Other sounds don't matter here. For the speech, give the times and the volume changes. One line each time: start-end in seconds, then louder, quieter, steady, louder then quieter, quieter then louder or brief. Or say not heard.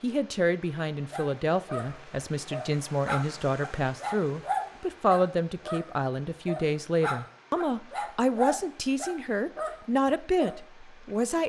0.0-11.4 steady.